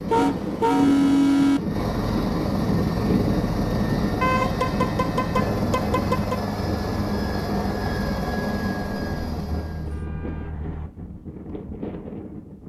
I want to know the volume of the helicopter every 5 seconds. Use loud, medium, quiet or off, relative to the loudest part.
loud, loud, off.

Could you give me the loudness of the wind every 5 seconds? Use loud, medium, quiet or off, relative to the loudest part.
loud, medium, medium.